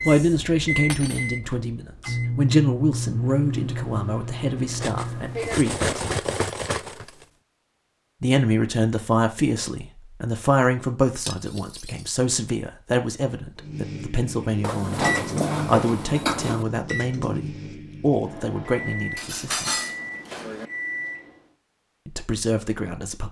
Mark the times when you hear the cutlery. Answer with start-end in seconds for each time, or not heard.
0.9-1.3, 4.8-7.2, 11.2-12.1, 14.6-16.6, 19.1-20.7.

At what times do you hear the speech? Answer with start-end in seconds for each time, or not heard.
0.1-6.2, 8.2-19.7, 22.1-23.2.